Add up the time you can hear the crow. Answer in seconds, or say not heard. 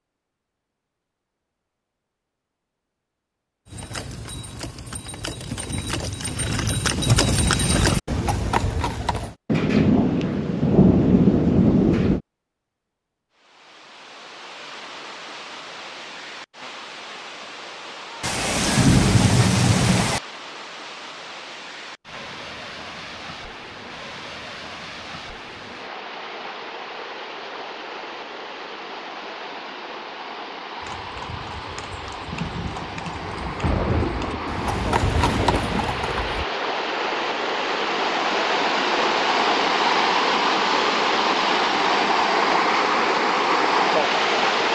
not heard.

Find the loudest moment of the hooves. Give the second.
7 s.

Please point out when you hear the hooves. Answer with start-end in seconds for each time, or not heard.
3.6-9.3, 30.8-36.5.